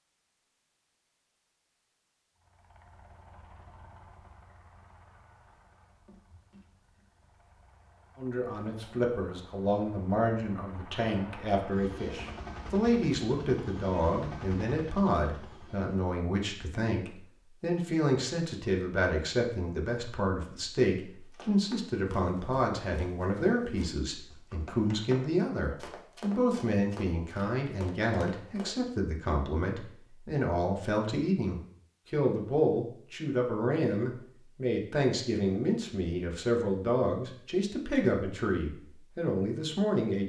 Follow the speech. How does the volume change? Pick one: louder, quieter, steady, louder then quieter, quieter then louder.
steady.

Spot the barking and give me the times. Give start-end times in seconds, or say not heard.
not heard.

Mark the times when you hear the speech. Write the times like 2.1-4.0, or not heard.
8.2-40.2.